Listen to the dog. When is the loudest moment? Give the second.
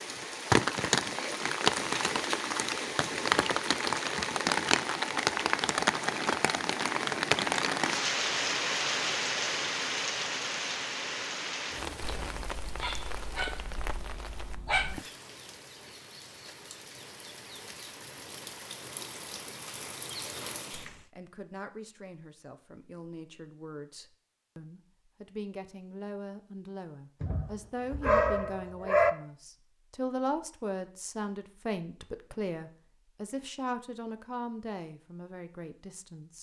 29 s.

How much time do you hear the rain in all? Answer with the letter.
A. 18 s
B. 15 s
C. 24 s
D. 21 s
D.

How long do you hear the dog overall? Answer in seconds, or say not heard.
5 s.